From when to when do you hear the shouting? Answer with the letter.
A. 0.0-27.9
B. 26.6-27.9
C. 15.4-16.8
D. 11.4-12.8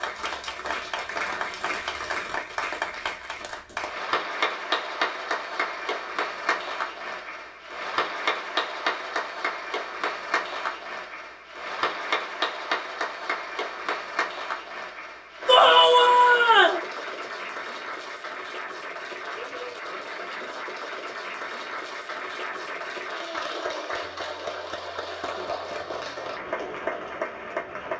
C.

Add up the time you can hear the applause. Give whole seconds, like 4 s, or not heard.
28 s.